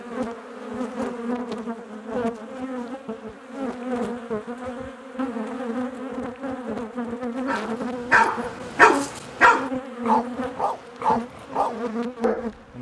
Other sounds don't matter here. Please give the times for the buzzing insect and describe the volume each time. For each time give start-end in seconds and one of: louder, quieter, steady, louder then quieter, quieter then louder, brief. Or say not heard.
0.0-12.7 steady.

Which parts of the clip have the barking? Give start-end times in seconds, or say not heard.
7.5-12.6.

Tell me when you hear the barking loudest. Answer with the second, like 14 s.
9 s.